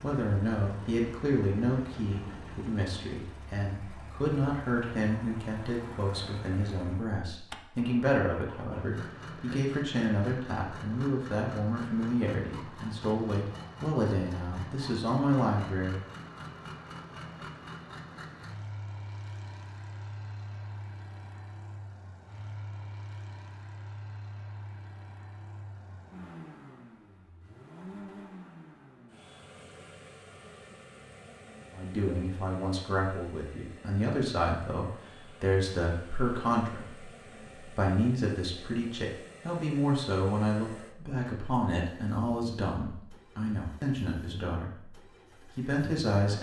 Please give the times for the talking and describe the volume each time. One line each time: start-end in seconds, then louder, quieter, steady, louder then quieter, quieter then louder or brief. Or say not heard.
0.0-16.1 steady
31.7-45.0 steady
45.5-46.3 brief.